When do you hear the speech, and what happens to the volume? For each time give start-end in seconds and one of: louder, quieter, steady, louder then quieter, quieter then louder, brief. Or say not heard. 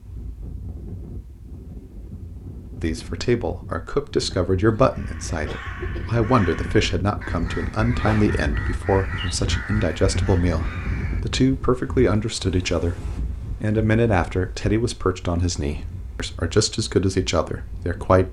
2.8-18.2 steady.